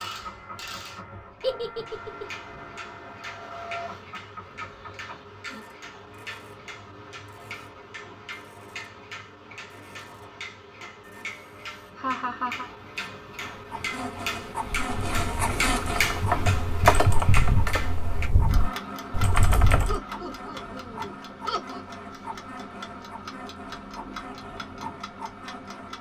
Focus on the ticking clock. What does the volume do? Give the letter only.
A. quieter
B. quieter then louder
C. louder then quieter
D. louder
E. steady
C.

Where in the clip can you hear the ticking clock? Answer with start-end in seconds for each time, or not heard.
0.0-25.9.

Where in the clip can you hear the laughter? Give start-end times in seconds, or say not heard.
1.4-2.2, 11.9-12.7, 19.9-21.9.